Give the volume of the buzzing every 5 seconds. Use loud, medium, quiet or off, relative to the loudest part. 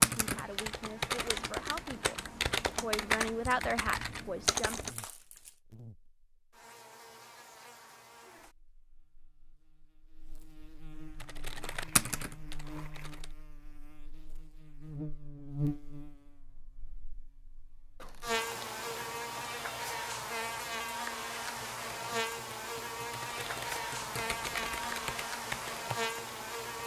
quiet, quiet, quiet, loud, loud, loud.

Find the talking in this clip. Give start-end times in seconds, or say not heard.
0.1-4.8.